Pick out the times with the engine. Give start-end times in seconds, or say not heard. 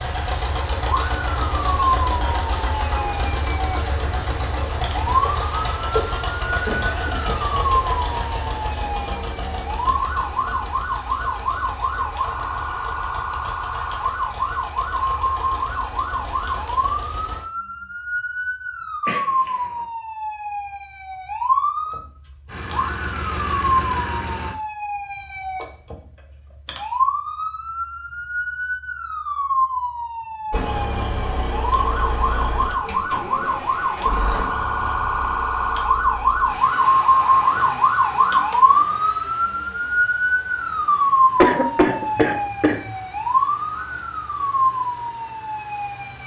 0.0-17.4, 22.4-24.6, 30.5-46.2.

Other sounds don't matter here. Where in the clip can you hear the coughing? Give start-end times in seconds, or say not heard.
5.2-7.5, 19.1-19.7, 41.4-43.0.